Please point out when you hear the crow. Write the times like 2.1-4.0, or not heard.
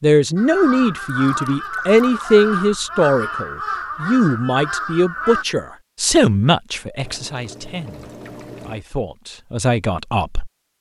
0.3-5.5.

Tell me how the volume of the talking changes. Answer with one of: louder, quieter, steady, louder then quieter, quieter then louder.
quieter.